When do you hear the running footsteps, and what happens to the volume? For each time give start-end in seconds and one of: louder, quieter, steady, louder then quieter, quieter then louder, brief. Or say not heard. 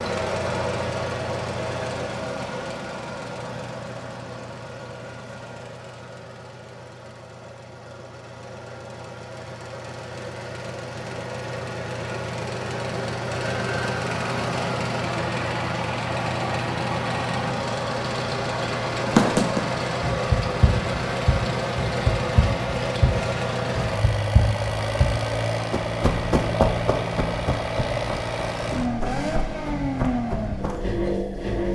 19.1-30.8 quieter.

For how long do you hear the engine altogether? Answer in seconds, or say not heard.
32 s.